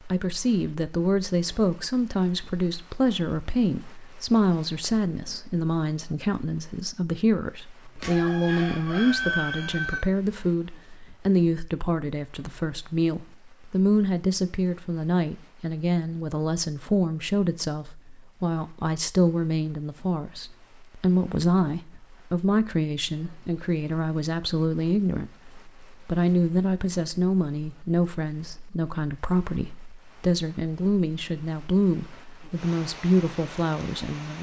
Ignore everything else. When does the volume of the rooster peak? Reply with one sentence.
The loudest moment of the rooster is at 9 seconds.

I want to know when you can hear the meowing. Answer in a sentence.
You can't hear the meowing here.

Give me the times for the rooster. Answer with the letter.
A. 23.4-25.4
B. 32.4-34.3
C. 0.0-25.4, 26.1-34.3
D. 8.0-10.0
D.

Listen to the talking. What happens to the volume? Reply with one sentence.
The volume of the talking stays about the same.